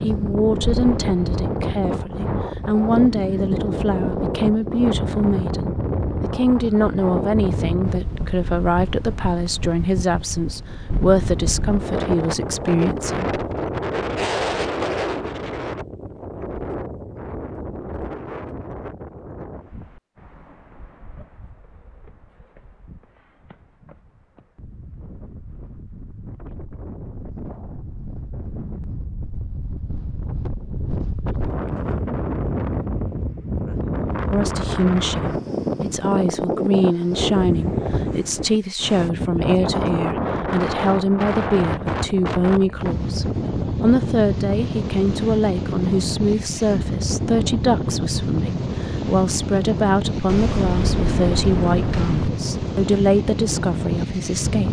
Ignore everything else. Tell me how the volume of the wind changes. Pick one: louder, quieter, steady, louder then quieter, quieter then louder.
quieter then louder.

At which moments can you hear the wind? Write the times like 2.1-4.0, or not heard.
0.0-54.6.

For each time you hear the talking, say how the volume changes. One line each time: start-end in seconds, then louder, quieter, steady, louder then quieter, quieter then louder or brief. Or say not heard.
0.0-13.3 steady
34.3-54.6 steady.